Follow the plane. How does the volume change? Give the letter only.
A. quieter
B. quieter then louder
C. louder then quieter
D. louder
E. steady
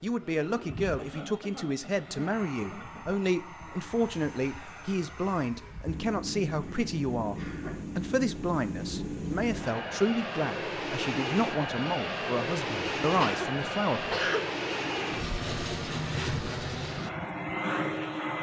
D.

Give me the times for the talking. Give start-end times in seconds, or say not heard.
0.0-14.2.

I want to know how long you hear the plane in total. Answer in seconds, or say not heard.
18 s.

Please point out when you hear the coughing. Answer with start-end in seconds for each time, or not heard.
0.9-3.2, 6.6-7.8, 13.2-14.5.